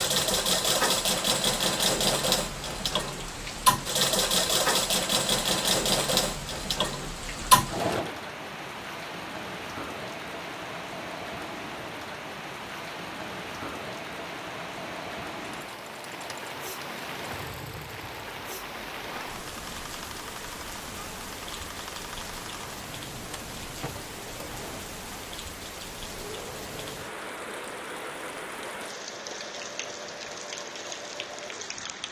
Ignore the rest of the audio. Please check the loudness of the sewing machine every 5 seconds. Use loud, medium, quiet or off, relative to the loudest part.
loud, loud, quiet, quiet, quiet, quiet, quiet.